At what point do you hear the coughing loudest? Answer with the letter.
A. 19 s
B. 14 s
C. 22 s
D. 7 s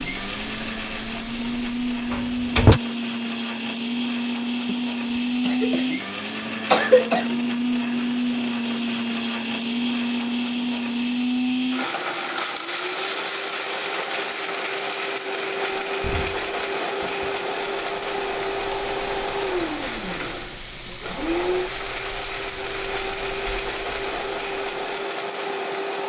D.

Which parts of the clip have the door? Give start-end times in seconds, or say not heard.
2.1-2.8, 15.7-17.4.